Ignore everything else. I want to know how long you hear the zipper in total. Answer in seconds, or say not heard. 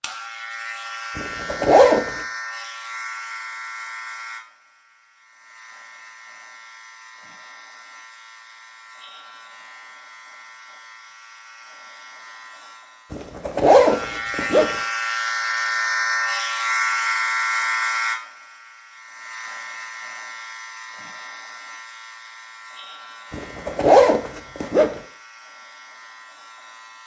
4 s.